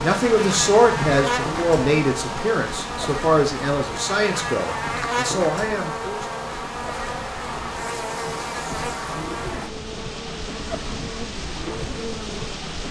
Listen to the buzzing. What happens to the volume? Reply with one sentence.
The volume of the buzzing goes down.